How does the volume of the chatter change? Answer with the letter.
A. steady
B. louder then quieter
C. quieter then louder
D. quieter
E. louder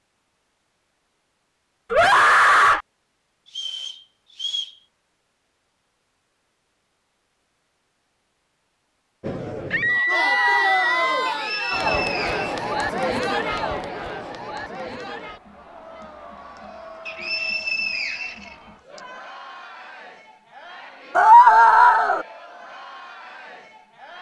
D.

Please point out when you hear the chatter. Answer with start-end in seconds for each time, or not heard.
9.2-24.1.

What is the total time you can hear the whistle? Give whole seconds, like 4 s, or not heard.
5 s.